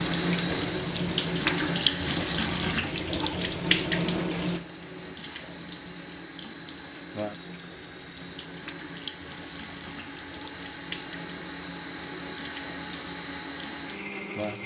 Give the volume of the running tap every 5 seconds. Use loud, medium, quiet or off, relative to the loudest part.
loud, quiet, quiet.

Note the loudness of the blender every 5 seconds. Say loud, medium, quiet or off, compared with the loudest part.
loud, medium, loud.